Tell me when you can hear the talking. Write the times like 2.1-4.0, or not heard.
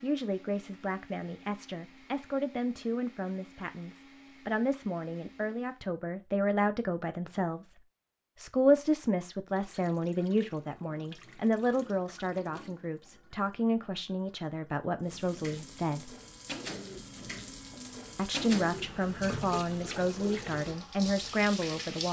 0.0-7.8, 8.3-16.1, 18.1-22.0.